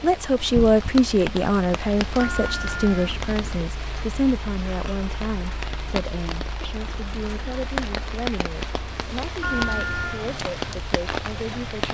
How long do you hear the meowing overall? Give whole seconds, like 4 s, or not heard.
2 s.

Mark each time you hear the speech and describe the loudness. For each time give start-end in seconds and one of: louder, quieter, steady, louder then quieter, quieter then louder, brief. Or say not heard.
0.0-11.9 quieter.